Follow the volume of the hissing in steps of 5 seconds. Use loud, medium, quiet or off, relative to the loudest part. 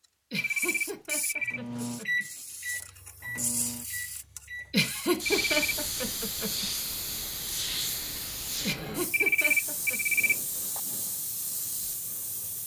medium, loud, medium.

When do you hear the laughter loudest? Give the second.
5 s.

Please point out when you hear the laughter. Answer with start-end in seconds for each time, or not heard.
0.3-2.2, 4.7-6.7, 8.6-10.0.